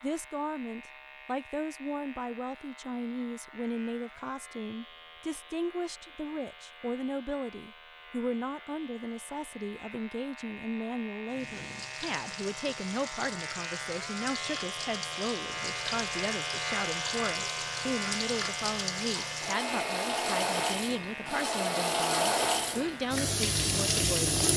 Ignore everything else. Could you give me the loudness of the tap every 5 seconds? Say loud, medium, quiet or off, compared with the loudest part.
off, off, quiet, medium, loud.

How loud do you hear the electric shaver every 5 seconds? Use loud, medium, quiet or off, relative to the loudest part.
quiet, quiet, medium, loud, medium.